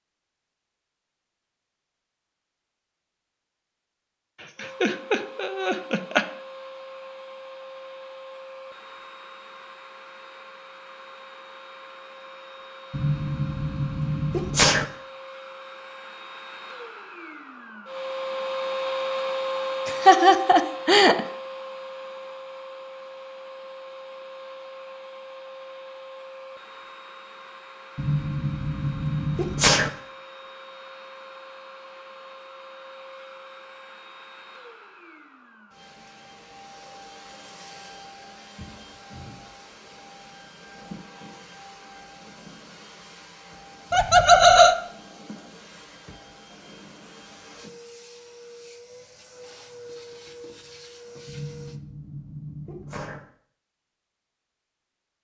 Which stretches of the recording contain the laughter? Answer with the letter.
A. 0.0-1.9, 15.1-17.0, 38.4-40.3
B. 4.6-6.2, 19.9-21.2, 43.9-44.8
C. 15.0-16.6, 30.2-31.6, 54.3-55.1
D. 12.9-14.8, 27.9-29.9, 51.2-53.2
B.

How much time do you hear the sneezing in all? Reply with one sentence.
The sneezing can be heard for 6 seconds in total.